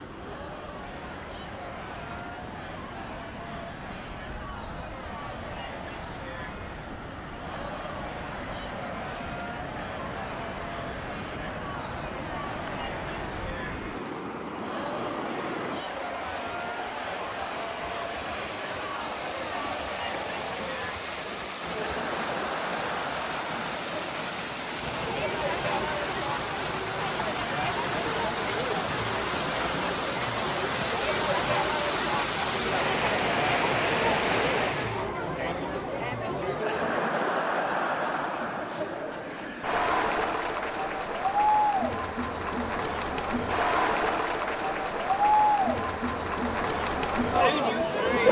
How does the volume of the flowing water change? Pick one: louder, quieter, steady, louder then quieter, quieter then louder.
louder.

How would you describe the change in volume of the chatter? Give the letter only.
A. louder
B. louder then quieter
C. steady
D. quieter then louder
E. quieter
A.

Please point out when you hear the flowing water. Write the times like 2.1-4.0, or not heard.
0.0-35.1.